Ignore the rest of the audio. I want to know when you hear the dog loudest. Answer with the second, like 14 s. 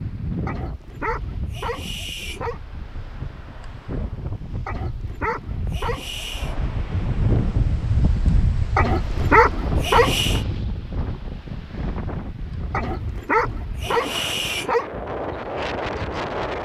9 s.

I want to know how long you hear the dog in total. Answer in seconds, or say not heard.
8 s.